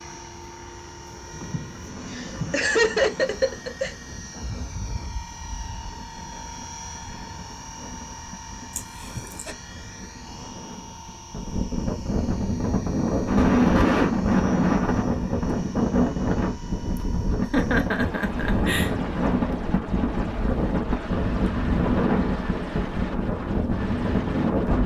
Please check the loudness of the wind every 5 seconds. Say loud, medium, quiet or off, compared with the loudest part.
quiet, quiet, loud, loud, loud.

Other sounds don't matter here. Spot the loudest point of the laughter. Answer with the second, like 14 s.
3 s.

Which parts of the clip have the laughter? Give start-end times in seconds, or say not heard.
1.3-4.0, 8.8-9.6, 17.5-18.9.